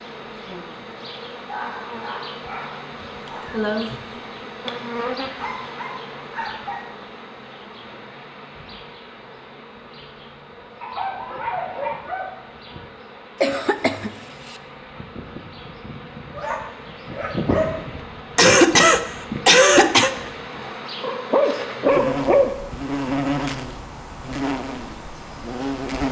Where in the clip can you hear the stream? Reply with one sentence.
The stream can't be heard in this clip.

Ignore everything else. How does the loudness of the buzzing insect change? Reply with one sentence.
The volume of the buzzing insect goes down, then up.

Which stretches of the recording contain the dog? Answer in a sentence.
The dog can be heard from 1.4 to 3.5 s, from 5.3 to 6.8 s, from 10.8 to 12.4 s, from 16.4 to 17.8 s and from 21.0 to 22.6 s.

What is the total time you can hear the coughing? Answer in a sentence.
The coughing can be heard for 4 seconds in total.